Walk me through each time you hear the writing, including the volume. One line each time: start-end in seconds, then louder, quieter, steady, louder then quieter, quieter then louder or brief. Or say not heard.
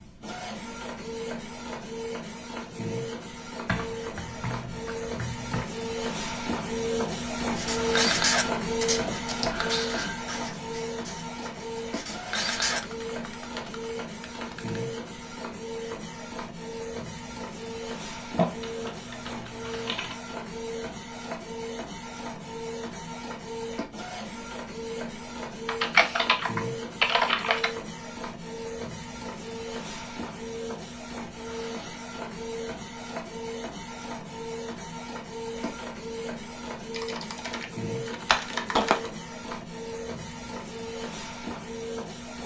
7.5-12.8 quieter then louder.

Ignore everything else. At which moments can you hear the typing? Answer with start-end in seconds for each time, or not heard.
3.6-5.7, 12.8-14.8, 18.4-20.1, 25.6-27.7, 36.9-39.1.